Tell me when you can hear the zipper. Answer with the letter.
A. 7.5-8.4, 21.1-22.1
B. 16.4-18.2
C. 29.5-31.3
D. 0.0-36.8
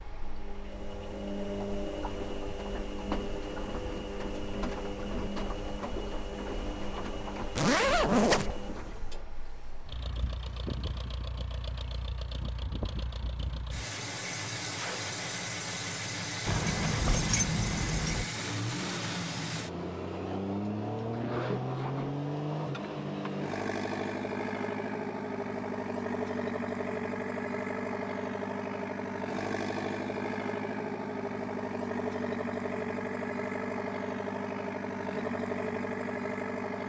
A.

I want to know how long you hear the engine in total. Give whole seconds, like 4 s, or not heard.
37 s.